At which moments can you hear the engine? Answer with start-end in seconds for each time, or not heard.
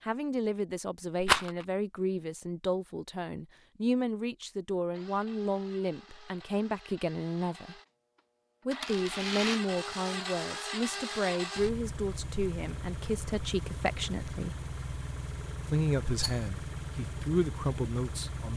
4.9-18.5.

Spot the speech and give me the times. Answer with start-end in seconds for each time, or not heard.
0.0-7.8, 8.7-14.6, 15.7-18.5.